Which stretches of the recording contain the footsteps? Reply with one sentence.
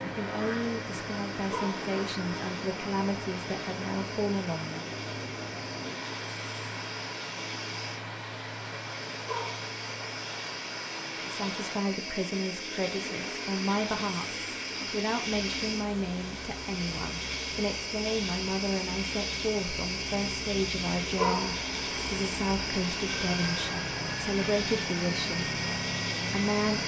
The footsteps can't be heard in this clip.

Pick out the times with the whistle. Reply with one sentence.
You can't hear the whistle here.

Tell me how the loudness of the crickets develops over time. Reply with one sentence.
The volume of the crickets goes up.